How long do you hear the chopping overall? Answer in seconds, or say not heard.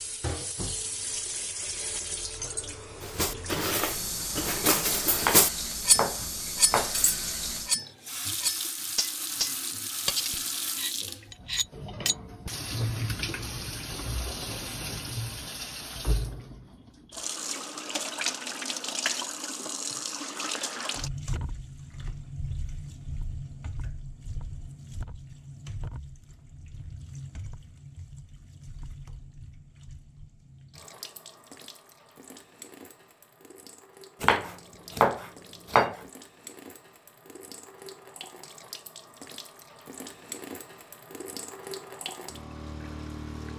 4 s.